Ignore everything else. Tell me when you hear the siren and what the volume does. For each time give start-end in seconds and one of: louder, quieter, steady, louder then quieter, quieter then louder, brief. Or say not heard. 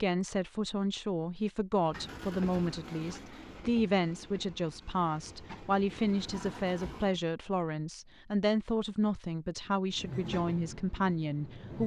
not heard.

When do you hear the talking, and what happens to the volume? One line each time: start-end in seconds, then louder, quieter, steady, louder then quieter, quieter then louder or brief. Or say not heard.
0.0-11.8 steady.